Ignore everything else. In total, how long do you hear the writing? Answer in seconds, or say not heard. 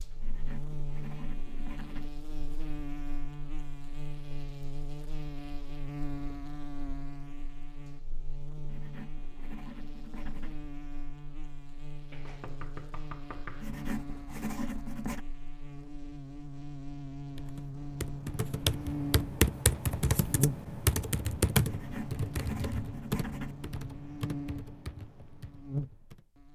7 s.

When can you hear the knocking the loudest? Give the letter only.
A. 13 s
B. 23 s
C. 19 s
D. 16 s
A.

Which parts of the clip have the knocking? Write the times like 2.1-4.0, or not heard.
12.1-13.7.